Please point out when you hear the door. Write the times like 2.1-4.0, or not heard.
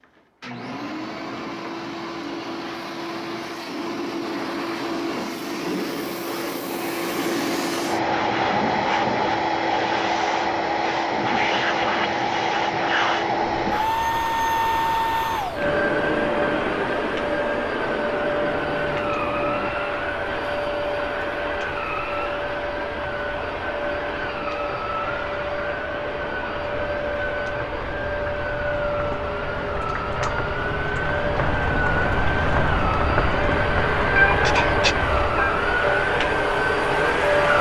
not heard.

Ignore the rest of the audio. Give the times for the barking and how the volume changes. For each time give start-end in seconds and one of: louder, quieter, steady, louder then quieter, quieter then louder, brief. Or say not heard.
not heard.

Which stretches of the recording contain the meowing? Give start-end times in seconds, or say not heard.
34.1-35.5.